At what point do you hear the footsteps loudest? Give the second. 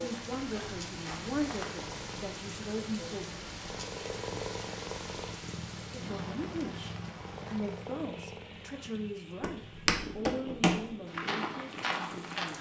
11 s.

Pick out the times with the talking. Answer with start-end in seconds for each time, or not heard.
0.0-3.4, 5.9-12.5.